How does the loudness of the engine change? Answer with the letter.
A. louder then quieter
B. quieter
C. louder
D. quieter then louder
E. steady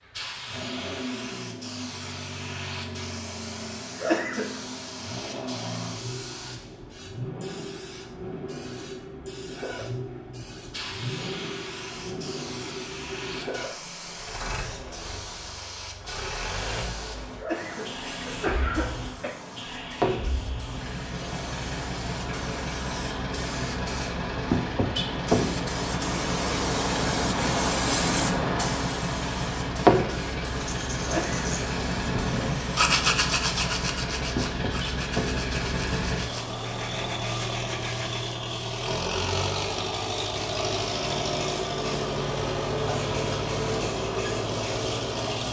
C.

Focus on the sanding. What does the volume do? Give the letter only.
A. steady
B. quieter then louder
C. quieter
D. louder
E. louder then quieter
E.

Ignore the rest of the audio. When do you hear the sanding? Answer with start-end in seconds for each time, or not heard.
30.6-38.2.